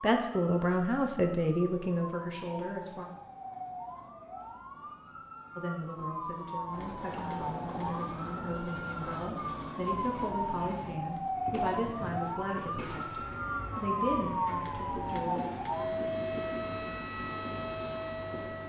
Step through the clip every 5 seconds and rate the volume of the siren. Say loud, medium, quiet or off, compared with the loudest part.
medium, medium, loud, loud.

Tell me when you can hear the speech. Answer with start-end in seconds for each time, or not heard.
0.0-3.0, 5.5-15.4.